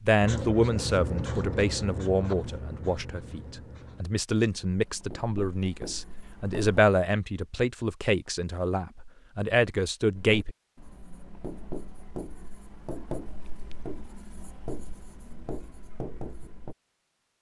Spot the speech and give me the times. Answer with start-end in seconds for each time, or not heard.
0.0-10.6.